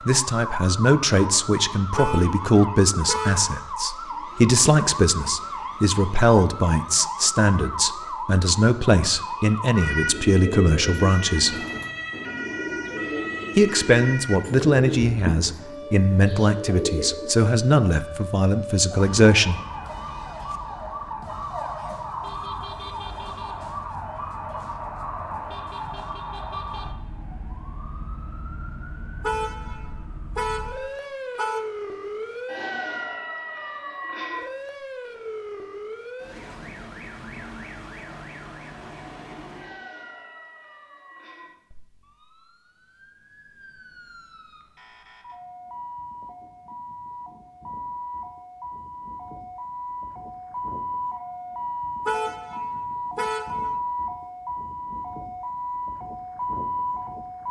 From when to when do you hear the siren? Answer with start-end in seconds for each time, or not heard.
0.0-57.4.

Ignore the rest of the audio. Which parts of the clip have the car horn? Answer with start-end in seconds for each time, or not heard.
1.9-3.5, 29.2-31.6, 52.0-53.8.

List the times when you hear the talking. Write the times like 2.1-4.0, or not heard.
0.1-11.6, 13.6-19.6.